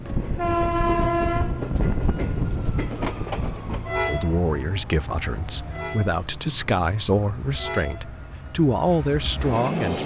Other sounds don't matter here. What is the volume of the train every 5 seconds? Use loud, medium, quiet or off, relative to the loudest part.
loud, medium.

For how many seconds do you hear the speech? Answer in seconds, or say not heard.
6 s.